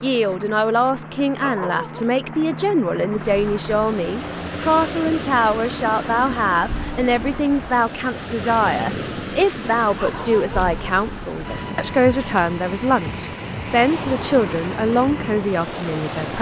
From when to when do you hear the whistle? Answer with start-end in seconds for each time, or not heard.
not heard.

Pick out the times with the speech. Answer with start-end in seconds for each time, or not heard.
0.0-16.3.